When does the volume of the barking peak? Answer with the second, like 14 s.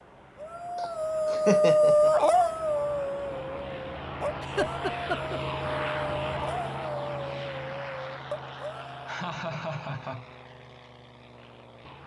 2 s.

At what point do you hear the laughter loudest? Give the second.
2 s.